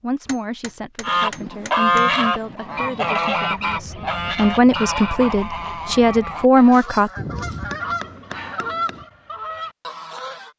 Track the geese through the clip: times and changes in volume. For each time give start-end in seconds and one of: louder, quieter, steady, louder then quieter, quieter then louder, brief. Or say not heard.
1.0-10.5 quieter.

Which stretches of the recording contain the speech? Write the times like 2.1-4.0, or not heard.
0.0-7.1.